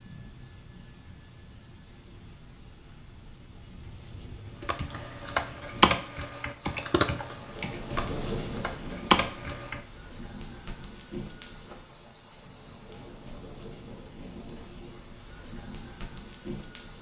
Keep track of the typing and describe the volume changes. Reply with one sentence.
The loudness of the typing goes down, then up.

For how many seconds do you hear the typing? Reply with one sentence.
The typing can be heard for 5 seconds in total.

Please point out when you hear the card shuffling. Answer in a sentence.
The card shuffling can't be heard in this clip.